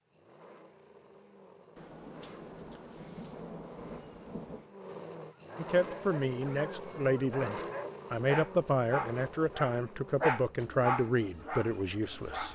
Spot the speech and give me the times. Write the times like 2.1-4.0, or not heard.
5.5-12.4.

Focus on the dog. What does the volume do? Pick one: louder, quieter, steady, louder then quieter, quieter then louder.
louder.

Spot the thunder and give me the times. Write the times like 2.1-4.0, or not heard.
1.8-4.7.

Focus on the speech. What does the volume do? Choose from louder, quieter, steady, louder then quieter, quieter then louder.
steady.